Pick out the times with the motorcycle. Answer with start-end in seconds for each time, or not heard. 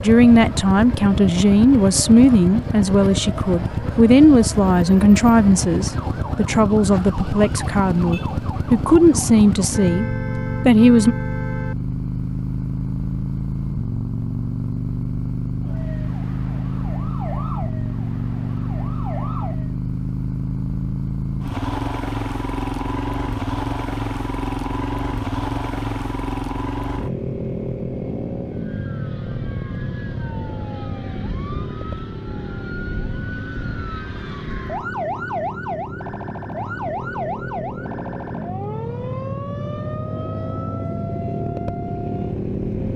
0.0-42.9.